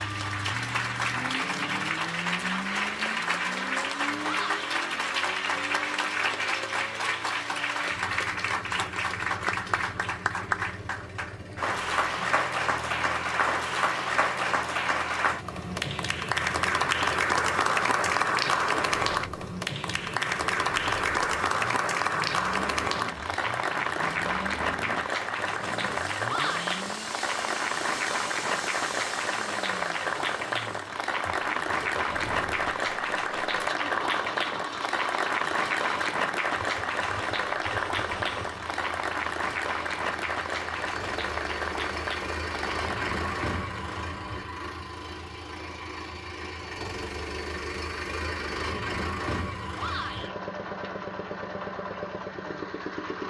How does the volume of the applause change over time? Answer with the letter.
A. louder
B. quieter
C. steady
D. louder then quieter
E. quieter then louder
C.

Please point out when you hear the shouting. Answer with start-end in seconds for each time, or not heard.
4.2-4.7, 26.2-26.8, 49.8-50.4.